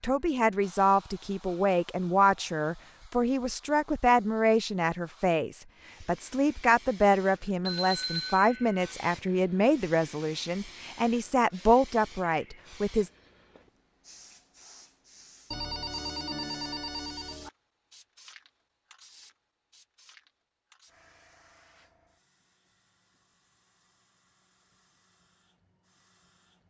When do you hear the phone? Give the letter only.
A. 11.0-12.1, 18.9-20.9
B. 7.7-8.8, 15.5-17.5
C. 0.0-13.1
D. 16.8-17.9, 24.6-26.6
B.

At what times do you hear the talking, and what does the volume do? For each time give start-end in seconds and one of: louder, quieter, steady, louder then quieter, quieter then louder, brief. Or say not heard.
0.0-13.1 steady.